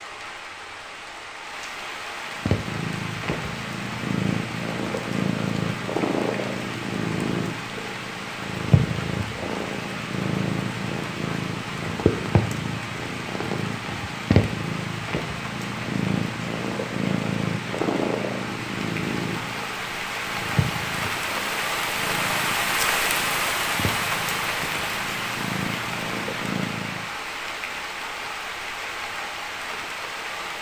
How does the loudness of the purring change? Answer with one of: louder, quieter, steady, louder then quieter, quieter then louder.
quieter.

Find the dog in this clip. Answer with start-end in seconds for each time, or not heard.
not heard.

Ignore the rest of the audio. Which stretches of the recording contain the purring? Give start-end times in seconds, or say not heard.
2.3-27.1.